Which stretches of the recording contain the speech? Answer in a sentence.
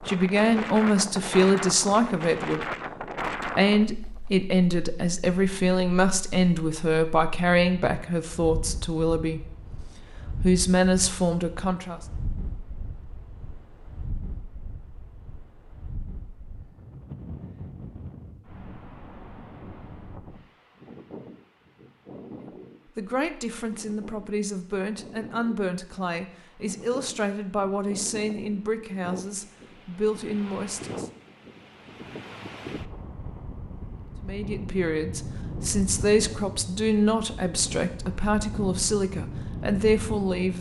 You can hear the speech from 0.0 to 2.6 s, from 3.5 to 9.5 s, from 10.4 to 12.0 s, from 22.9 to 31.1 s and from 34.2 to 40.5 s.